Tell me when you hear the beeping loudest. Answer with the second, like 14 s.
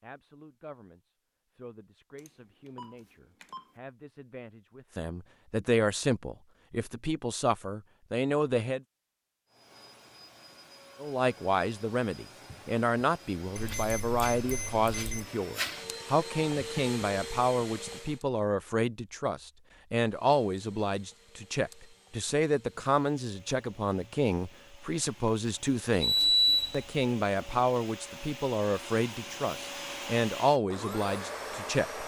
26 s.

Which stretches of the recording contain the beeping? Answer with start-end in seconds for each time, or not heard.
2.1-3.7, 13.6-15.2, 26.0-26.9.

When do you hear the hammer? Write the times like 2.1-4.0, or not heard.
not heard.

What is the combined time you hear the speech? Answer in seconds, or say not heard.
30 s.